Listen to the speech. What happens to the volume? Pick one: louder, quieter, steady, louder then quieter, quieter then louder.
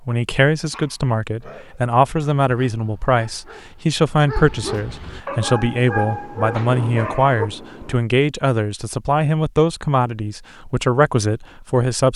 steady.